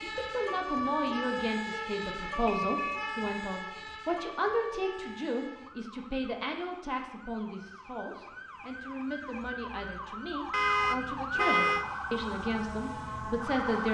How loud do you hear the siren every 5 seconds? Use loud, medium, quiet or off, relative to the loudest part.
loud, medium, loud.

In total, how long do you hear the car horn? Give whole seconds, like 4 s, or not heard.
3 s.